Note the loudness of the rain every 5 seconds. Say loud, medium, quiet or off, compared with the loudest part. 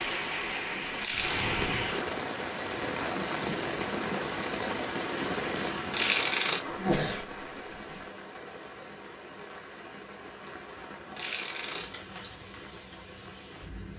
loud, medium, quiet.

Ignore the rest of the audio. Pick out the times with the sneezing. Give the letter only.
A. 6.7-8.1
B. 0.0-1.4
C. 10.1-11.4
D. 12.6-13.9
A.